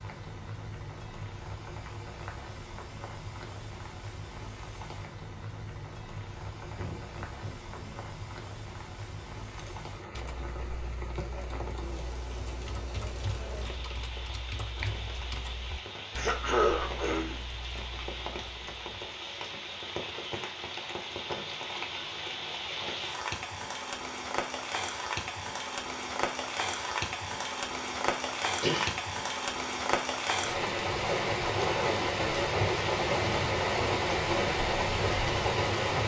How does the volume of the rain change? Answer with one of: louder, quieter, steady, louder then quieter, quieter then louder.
louder.